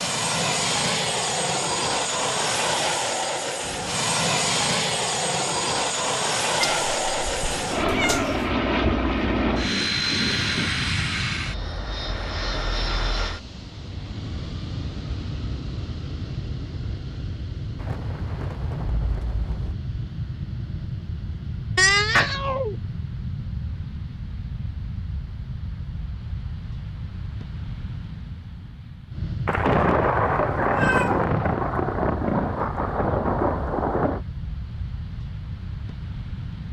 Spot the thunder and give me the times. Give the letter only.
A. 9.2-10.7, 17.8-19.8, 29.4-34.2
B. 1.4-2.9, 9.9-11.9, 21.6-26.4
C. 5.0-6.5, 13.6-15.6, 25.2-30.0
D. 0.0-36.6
A.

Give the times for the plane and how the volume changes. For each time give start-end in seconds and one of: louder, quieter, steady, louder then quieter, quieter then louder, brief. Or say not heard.
0.0-36.6 quieter.